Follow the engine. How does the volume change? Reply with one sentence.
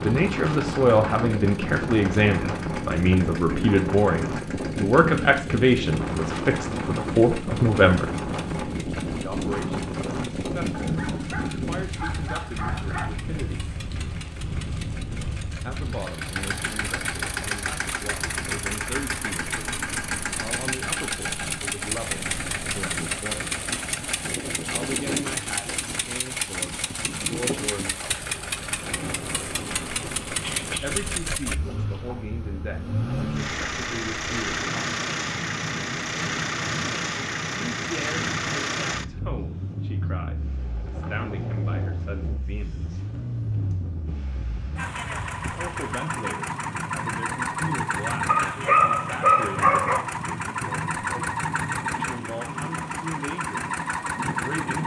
The loudness of the engine goes up.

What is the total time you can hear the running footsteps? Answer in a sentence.
The running footsteps can't be heard in this clip.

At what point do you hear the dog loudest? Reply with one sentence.
The loudest moment of the dog is at 49 seconds.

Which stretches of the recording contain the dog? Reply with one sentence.
You can hear the dog from 10.7 to 13.1 s, from 30.4 to 32.1 s and from 48.2 to 50.0 s.